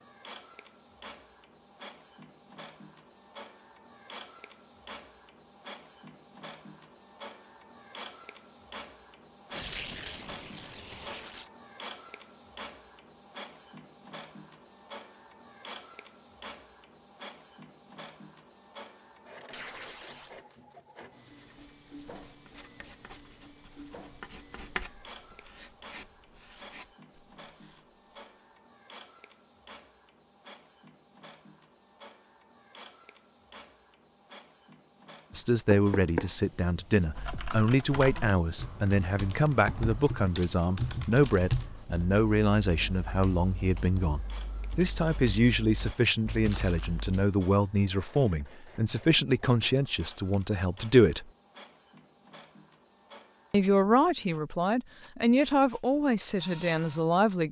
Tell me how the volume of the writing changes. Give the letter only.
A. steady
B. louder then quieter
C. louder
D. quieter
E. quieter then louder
B.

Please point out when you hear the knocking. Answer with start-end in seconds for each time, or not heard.
35.7-36.4.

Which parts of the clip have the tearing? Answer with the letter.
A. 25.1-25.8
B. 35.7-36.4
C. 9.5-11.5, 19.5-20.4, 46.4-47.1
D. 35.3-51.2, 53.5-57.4
C.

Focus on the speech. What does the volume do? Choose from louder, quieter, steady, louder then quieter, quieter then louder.
steady.